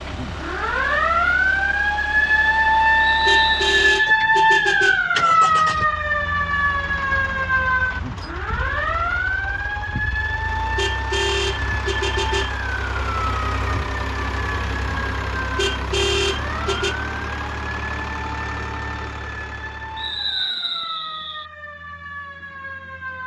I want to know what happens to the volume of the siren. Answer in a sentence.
The loudness of the siren goes down.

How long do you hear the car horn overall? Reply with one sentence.
You can hear the car horn for 5 seconds altogether.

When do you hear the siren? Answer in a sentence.
You can hear the siren from 0.0 to 23.2 s.